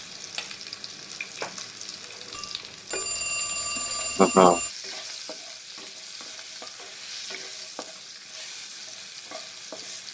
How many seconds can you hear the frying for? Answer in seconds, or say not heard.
10 s.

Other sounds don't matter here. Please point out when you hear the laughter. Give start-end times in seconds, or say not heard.
3.8-4.6.